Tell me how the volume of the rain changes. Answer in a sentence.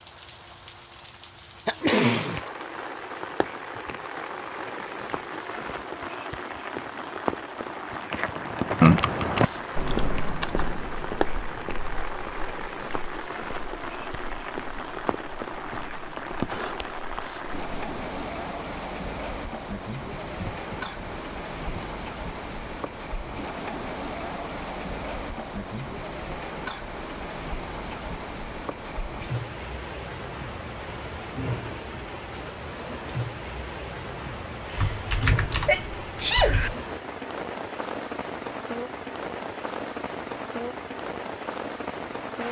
The loudness of the rain stays about the same.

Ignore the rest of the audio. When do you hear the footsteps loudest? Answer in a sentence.
The volume of the footsteps peaks at 9 seconds.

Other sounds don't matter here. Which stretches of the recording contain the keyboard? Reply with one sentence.
You can hear the keyboard from 8.8 to 10.8 s, from 20.2 to 21.9 s and from 34.8 to 36.8 s.